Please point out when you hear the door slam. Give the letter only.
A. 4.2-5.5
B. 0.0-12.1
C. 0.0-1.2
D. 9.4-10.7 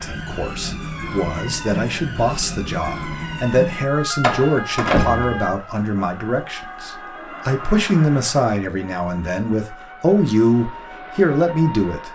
A.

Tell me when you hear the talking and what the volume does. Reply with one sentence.
The talking can be heard from 0.0 to 12.1 s, getting louder.